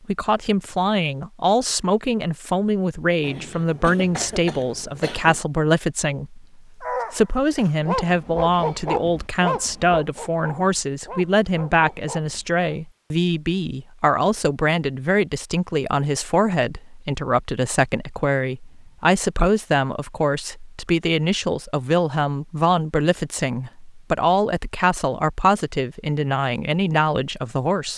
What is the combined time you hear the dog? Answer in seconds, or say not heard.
6 s.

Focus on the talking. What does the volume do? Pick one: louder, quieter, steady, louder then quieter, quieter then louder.
steady.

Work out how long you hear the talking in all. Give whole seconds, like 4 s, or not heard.
28 s.